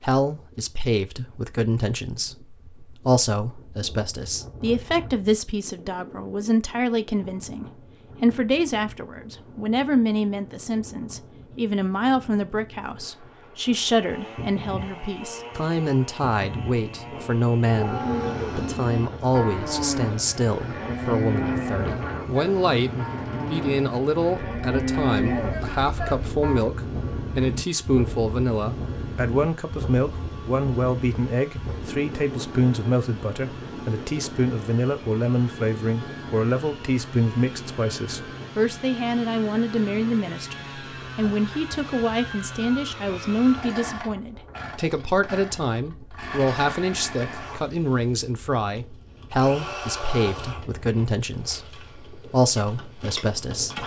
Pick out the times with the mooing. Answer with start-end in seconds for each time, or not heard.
17.6-26.8.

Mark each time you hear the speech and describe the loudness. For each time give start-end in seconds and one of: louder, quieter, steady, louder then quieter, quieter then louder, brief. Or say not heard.
0.0-53.8 steady.